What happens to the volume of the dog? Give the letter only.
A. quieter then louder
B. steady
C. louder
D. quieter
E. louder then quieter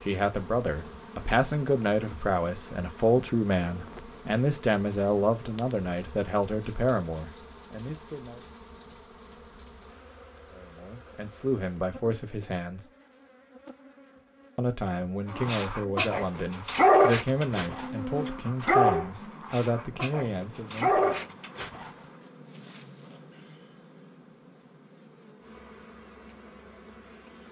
A.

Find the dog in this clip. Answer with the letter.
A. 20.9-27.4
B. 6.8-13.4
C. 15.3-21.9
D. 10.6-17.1
C.